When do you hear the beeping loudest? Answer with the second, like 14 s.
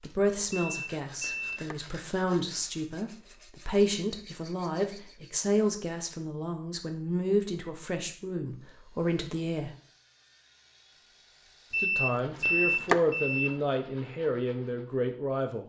13 s.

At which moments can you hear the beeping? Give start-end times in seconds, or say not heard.
0.7-1.8, 11.7-13.5.